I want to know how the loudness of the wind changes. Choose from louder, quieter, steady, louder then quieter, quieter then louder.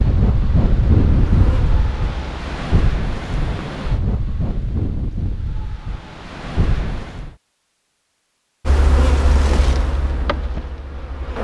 quieter.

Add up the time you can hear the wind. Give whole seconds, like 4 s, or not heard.
7 s.